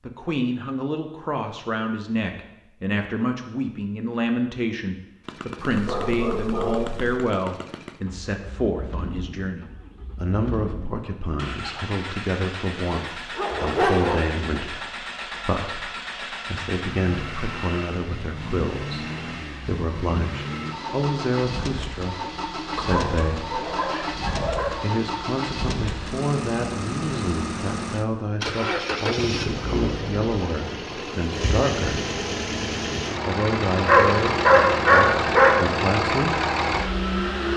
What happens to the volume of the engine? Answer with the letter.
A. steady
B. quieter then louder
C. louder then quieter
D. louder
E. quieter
D.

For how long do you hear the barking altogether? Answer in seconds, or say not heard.
6 s.